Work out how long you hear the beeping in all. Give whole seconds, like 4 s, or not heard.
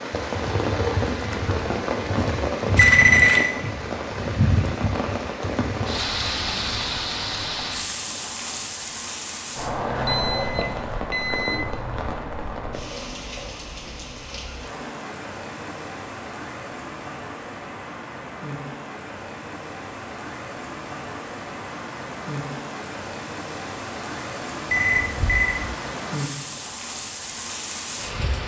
3 s.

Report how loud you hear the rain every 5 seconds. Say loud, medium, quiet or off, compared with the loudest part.
loud, loud, medium, medium, medium, medium.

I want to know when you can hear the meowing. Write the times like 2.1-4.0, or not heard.
not heard.